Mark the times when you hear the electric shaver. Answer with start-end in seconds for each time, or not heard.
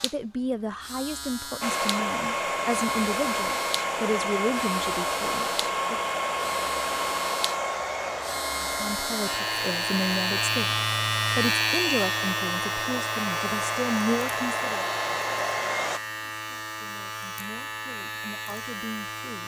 0.0-19.4.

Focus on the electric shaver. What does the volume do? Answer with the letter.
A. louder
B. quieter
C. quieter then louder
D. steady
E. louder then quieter
E.